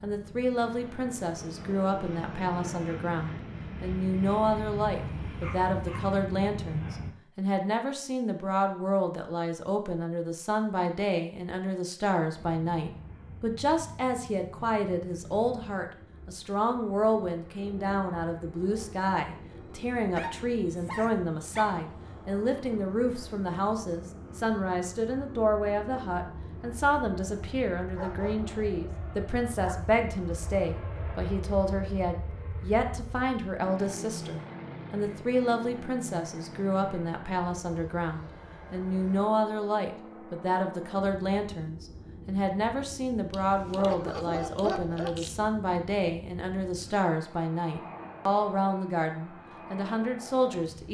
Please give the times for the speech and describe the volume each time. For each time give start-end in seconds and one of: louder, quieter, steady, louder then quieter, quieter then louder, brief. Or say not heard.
0.0-50.8 steady.